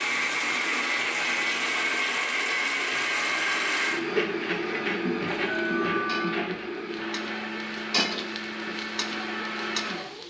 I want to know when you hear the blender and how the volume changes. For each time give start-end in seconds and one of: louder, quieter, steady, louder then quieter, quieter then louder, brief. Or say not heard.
0.0-10.2 quieter.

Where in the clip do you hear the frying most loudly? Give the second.
8 s.